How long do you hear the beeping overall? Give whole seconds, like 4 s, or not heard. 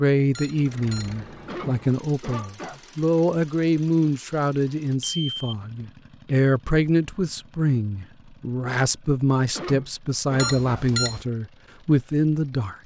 2 s.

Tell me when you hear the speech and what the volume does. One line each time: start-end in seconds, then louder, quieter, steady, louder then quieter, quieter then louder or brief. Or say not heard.
0.0-12.8 steady.